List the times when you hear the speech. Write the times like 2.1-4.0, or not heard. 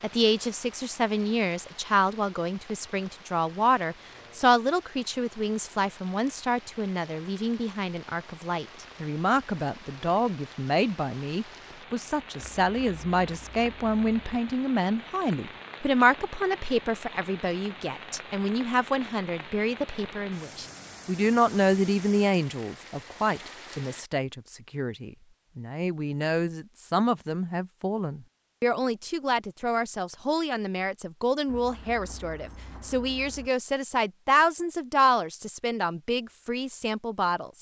0.0-37.5.